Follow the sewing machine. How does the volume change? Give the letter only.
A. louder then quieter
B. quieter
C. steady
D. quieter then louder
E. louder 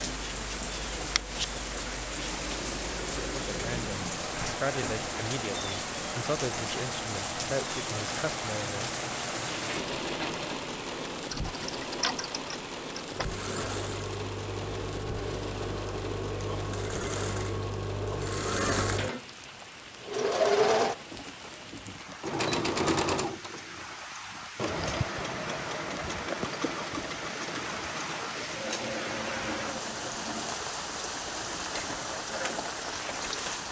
A.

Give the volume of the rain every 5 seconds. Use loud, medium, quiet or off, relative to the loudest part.
loud, loud, loud, medium, medium, loud, loud.